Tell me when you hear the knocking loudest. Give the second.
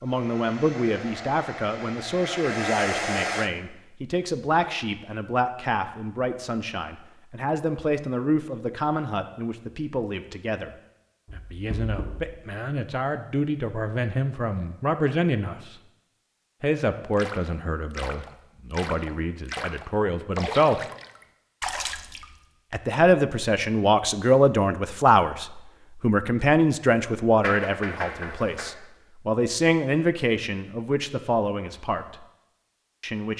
28 s.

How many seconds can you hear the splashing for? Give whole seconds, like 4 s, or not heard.
5 s.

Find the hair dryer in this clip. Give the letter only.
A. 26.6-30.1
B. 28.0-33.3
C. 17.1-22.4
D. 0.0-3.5
D.